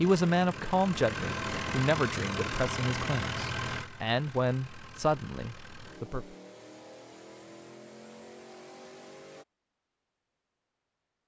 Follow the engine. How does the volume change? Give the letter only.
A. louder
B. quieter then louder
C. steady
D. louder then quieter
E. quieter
E.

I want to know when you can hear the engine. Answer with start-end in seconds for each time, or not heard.
0.0-9.4.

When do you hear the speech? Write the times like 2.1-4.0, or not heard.
0.0-6.3.